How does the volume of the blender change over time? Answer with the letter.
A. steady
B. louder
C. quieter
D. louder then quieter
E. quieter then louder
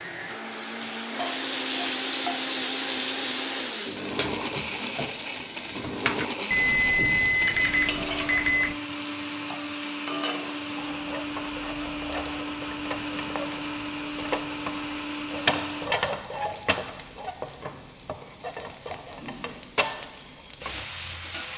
A.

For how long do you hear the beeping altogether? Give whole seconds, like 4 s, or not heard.
2 s.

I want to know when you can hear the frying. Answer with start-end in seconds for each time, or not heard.
0.1-21.5.